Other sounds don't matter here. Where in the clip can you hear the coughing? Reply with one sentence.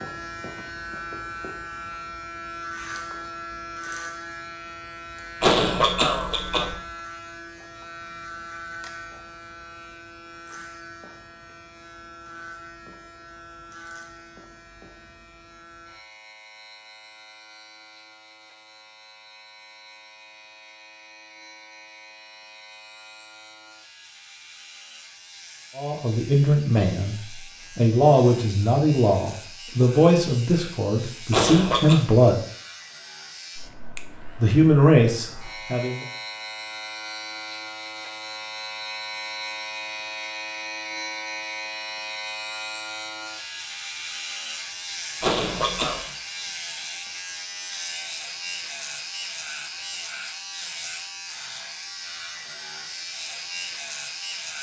You can hear the coughing from 5.4 to 6.8 s, from 31.3 to 32.0 s and from 45.2 to 46.0 s.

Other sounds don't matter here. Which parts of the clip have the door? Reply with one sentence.
You can't hear the door here.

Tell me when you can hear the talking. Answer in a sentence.
The talking can be heard from 25.8 to 27.1 s, from 27.8 to 32.4 s and from 34.4 to 36.0 s.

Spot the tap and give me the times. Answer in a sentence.
The tap can't be heard in this clip.